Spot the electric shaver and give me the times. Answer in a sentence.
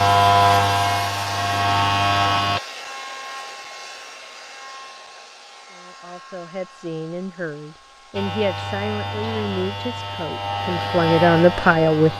The electric shaver can be heard from 0.0 to 2.6 s and from 8.2 to 12.1 s.